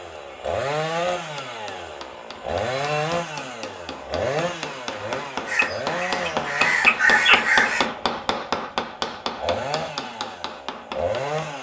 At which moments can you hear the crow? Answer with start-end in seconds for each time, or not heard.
5.5-7.9.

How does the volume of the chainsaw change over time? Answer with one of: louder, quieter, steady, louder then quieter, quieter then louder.
quieter then louder.